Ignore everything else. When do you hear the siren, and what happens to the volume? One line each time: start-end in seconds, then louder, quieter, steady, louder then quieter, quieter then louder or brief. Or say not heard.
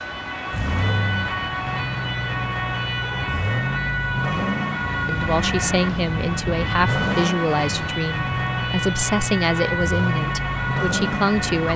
0.0-11.7 steady.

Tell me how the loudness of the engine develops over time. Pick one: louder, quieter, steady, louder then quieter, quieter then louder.
steady.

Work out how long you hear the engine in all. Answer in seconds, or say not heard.
12 s.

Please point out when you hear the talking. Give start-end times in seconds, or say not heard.
5.0-11.7.